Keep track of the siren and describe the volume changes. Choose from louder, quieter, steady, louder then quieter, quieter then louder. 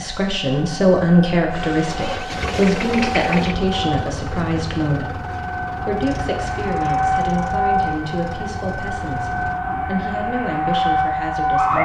louder.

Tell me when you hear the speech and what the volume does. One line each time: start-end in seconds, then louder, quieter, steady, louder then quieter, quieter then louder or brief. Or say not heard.
0.0-11.8 quieter.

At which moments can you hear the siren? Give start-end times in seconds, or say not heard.
0.0-11.8.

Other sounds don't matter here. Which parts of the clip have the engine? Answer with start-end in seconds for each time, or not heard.
1.5-9.6.